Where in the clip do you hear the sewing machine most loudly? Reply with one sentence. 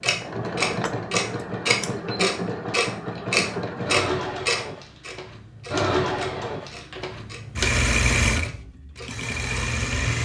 The loudest moment of the sewing machine is at 8 seconds.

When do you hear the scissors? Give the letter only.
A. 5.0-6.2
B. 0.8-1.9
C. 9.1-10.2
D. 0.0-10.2
B.